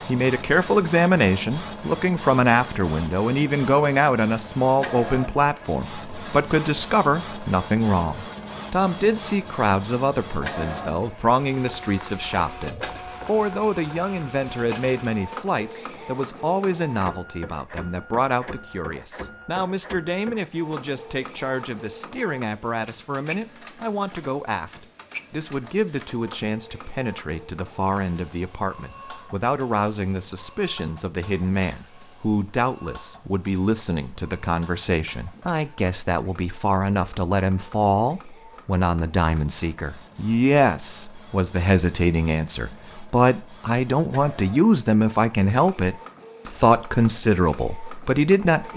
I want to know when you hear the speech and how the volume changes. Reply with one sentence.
The speech can be heard from 0.1 to 48.7 s, getting quieter then louder.